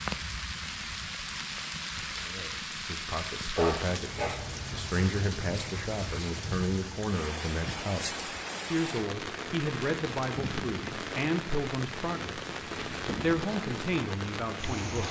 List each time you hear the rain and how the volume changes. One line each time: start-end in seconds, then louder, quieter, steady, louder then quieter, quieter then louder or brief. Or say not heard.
0.0-15.0 steady.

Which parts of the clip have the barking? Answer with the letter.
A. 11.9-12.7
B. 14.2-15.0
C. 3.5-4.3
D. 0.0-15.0
C.